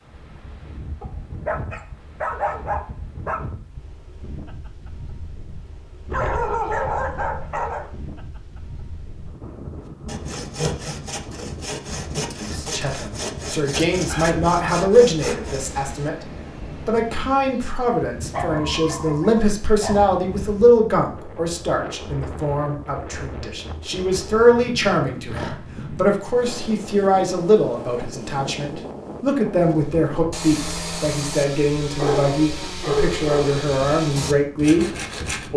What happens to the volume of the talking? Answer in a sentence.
The loudness of the talking stays about the same.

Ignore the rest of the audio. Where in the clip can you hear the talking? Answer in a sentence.
The talking can be heard from 12.3 to 35.5 s.